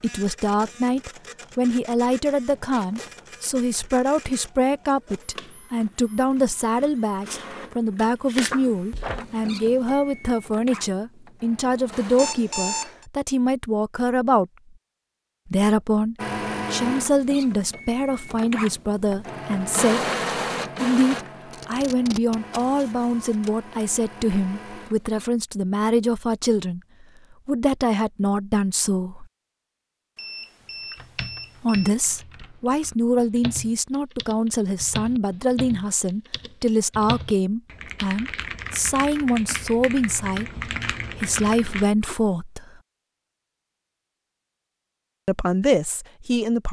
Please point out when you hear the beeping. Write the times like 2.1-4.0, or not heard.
12.2-13.1, 30.1-31.9.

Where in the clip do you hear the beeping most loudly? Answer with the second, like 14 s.
13 s.